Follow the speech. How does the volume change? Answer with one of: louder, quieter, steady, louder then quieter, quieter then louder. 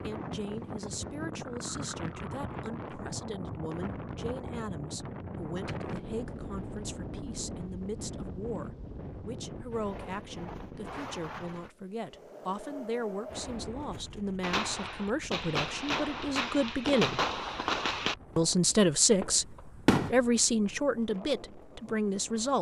louder.